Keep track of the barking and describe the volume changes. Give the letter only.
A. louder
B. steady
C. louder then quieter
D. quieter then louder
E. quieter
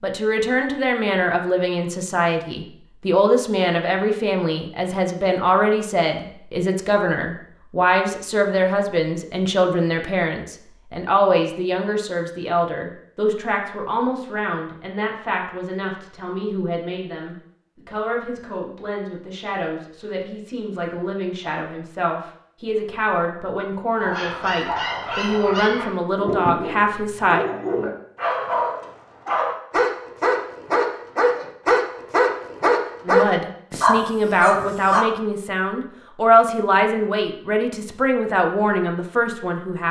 A.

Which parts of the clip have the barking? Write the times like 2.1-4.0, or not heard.
23.9-35.0.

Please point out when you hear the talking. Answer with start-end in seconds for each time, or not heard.
0.0-27.4, 33.0-39.8.